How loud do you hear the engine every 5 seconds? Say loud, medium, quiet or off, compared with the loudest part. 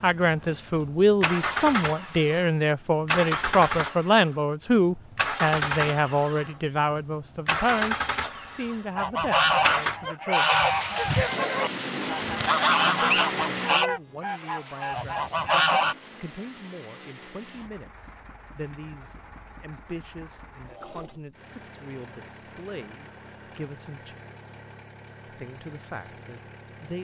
loud, loud, loud, quiet, quiet, quiet.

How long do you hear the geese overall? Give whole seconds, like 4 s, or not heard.
7 s.